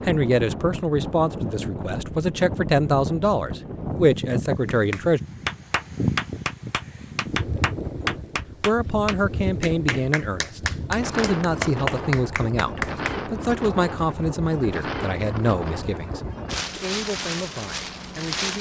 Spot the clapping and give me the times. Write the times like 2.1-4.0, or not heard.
4.7-13.2.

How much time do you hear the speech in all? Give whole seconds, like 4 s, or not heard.
15 s.